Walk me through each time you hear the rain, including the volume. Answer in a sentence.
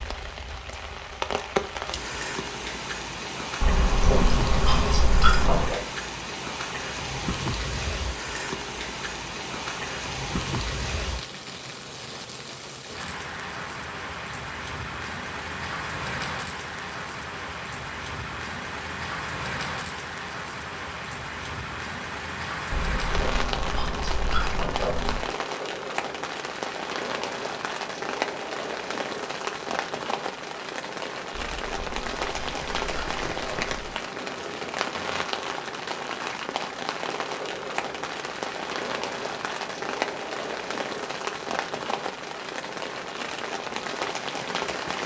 The rain can be heard from 0.0 to 45.0 s, at a steady volume.